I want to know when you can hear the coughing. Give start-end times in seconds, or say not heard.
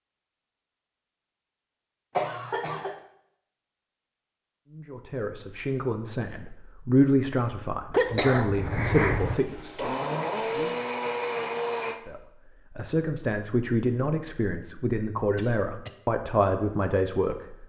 2.1-3.0, 7.9-9.4, 15.3-16.0.